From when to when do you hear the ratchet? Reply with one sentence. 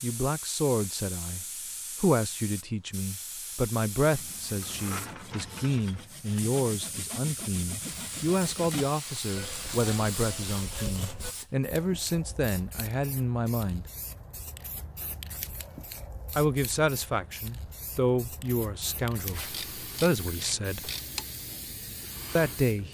You can hear the ratchet from 4.5 to 6.0 s and from 19.5 to 21.2 s.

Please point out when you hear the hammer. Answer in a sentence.
You can't hear the hammer here.